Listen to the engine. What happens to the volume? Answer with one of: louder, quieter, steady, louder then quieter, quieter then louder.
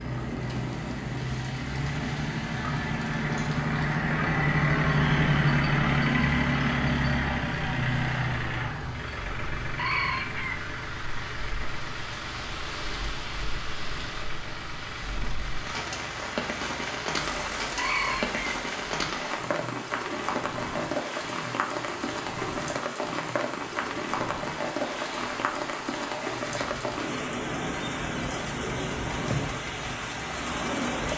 quieter.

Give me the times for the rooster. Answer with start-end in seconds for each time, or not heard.
9.8-10.7, 17.8-18.4.